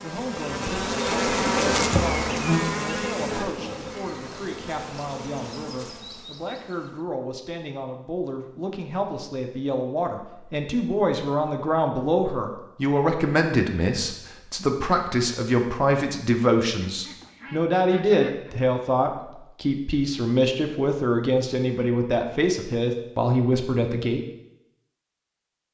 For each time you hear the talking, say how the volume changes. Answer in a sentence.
The talking can be heard from 0.0 to 24.2 s, getting louder.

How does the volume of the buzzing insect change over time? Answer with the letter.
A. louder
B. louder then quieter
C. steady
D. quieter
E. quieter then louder
D.